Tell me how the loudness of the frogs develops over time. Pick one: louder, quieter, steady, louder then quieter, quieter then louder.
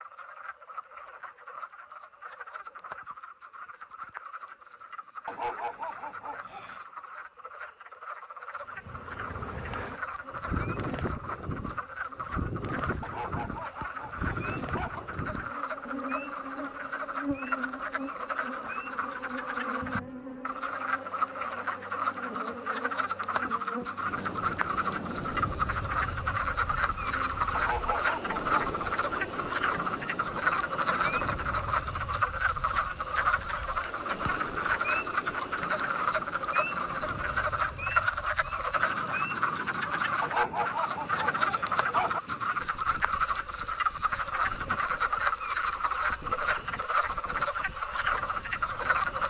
louder.